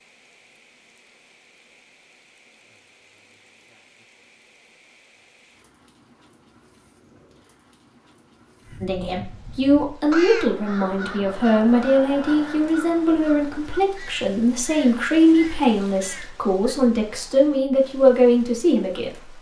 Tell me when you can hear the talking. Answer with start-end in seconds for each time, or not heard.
8.8-19.3.